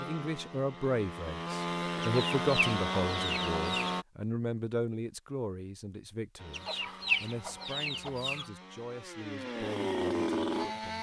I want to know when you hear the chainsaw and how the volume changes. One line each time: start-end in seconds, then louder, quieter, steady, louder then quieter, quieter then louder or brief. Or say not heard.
0.0-4.0 louder
6.3-10.9 louder.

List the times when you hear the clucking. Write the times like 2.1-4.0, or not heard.
2.0-4.0, 6.5-8.4.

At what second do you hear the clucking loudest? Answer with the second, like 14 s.
7 s.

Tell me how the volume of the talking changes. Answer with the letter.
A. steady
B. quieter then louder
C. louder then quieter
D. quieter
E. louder
D.